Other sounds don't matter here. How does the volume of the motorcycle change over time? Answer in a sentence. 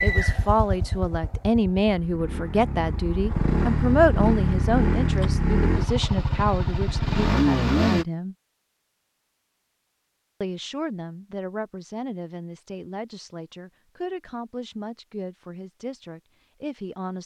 The loudness of the motorcycle goes up.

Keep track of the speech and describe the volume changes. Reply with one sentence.
The loudness of the speech goes down.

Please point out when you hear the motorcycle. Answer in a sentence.
You can hear the motorcycle from 0.0 to 8.1 s.